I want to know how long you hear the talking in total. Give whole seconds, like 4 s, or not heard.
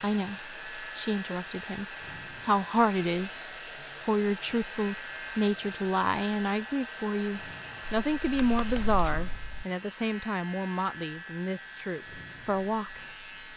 12 s.